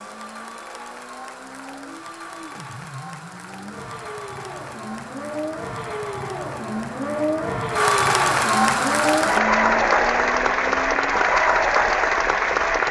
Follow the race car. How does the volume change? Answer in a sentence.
The loudness of the race car goes up.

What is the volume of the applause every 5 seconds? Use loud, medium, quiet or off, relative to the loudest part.
quiet, loud, loud.